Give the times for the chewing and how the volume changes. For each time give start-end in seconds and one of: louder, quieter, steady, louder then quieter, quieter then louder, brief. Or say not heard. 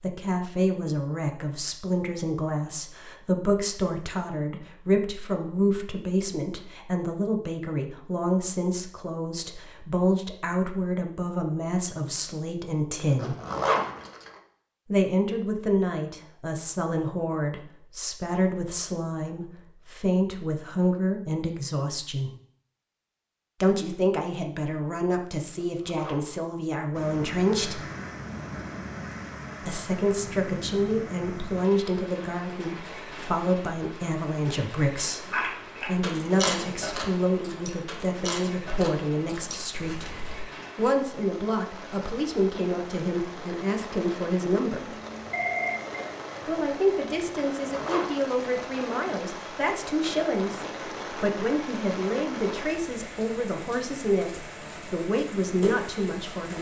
35.3-40.5 quieter.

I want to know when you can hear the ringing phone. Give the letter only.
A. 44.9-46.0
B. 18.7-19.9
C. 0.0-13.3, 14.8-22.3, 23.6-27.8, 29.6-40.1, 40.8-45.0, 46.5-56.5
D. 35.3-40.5
A.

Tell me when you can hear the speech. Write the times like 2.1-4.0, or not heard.
0.0-13.3, 14.8-22.3, 23.6-27.8, 29.6-40.1, 40.8-45.0, 46.5-56.5.